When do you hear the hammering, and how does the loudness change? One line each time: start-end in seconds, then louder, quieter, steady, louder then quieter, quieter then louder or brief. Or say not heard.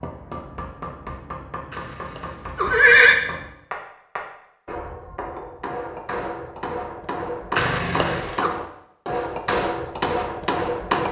0.0-11.0 louder.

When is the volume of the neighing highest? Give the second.
3 s.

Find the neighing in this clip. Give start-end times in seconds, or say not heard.
1.7-3.1, 7.5-8.5.